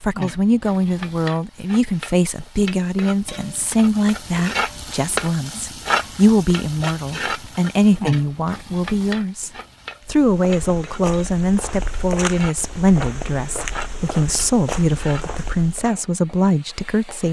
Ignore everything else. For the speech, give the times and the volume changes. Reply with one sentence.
You can hear the speech from 0.0 to 17.2 s, at a steady volume.